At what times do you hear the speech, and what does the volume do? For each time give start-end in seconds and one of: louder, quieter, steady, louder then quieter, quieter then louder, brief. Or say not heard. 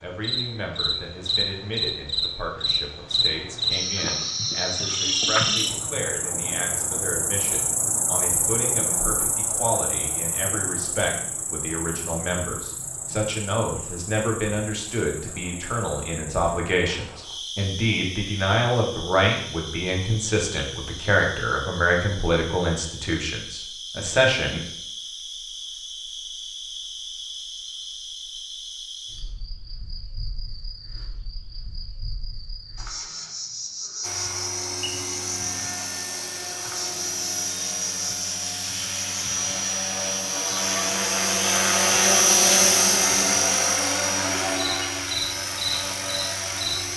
0.0-24.6 louder.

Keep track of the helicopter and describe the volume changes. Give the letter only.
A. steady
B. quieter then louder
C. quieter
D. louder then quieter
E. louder
D.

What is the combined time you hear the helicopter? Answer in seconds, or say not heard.
13 s.